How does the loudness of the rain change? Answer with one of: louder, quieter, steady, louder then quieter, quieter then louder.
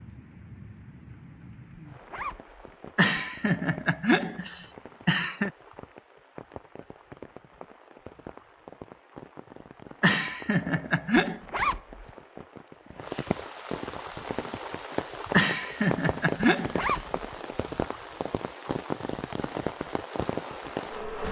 louder.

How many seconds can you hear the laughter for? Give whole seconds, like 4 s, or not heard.
6 s.